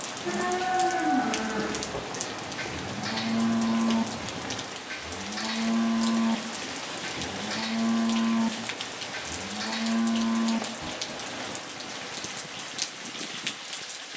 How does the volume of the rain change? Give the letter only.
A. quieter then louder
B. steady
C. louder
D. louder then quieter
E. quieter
B.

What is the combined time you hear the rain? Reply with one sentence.
The rain can be heard for 14 seconds in total.